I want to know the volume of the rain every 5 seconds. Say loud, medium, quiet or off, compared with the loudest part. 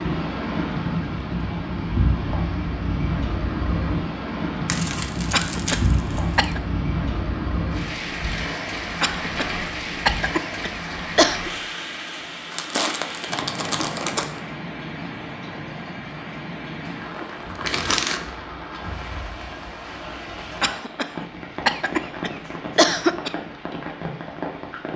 loud, loud, medium, medium, medium.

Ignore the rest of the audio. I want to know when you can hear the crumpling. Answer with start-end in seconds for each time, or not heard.
4.7-6.5, 12.5-14.4, 16.9-18.2.